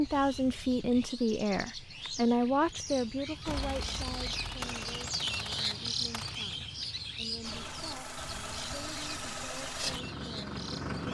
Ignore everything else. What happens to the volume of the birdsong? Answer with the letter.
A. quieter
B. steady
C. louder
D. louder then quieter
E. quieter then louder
D.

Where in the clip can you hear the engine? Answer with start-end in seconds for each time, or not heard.
7.4-11.0.